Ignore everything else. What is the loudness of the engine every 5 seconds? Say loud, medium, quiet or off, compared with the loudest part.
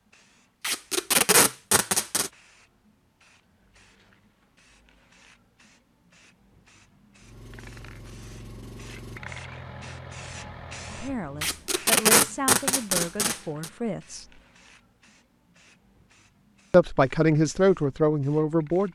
off, loud, loud, off.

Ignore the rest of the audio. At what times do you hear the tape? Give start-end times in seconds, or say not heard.
0.6-2.3, 11.4-13.7.